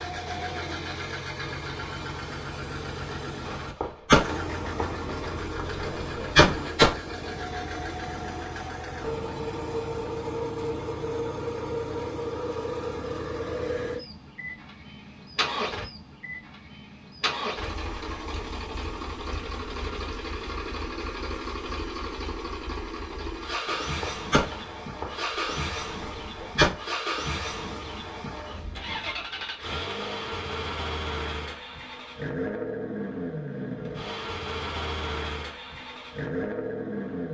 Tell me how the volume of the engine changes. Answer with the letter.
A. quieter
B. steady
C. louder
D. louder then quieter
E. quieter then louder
B.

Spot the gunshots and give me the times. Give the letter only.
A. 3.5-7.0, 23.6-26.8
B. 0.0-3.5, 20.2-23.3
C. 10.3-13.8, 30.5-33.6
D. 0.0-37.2
A.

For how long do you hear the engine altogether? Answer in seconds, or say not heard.
37 s.